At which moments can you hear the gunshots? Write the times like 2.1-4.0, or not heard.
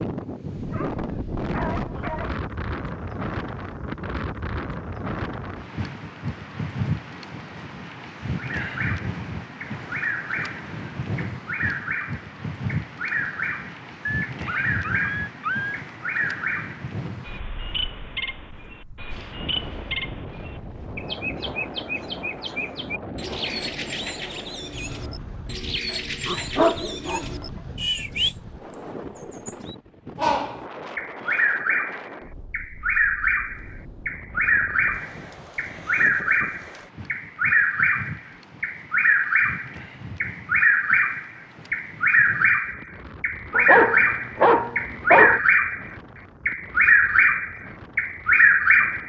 not heard.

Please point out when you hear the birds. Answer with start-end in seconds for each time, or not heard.
8.3-28.4, 29.1-49.0.